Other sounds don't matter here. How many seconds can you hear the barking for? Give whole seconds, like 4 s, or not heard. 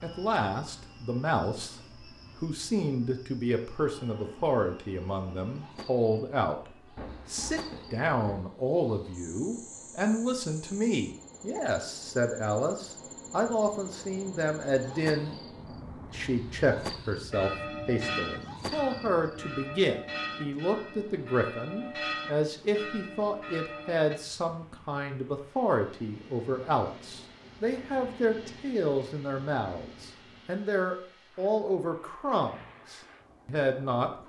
not heard.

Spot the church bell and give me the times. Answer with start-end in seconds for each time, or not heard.
17.3-24.1.